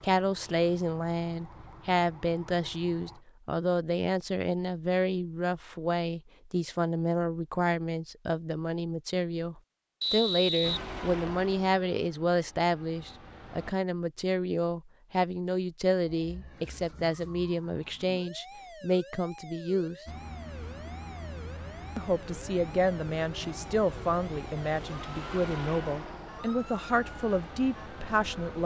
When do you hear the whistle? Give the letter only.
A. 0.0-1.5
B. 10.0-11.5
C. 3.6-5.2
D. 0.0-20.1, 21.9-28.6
B.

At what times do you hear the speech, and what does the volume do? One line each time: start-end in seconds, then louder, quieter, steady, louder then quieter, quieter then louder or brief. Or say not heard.
0.0-20.1 steady
21.9-28.6 steady.